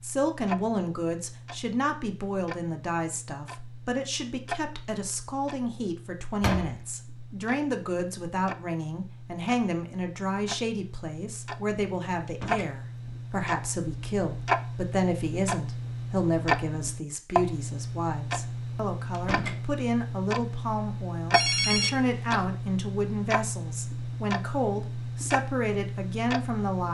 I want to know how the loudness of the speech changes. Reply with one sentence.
The loudness of the speech stays about the same.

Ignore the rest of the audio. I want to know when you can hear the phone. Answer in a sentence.
The phone can be heard from 21.3 to 22.1 s.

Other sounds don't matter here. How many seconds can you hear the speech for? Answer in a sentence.
You can hear the speech for 27 seconds altogether.